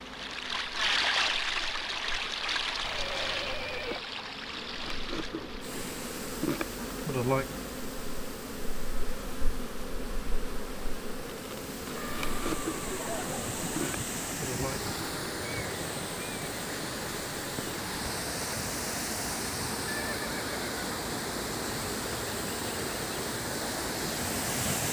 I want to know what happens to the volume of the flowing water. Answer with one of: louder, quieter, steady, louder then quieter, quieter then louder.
quieter then louder.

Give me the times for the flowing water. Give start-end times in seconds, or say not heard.
0.0-24.8.